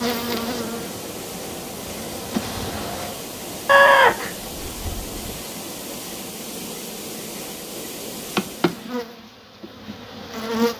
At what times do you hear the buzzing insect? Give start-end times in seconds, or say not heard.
0.0-3.1, 8.3-10.7.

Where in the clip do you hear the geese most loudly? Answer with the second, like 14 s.
4 s.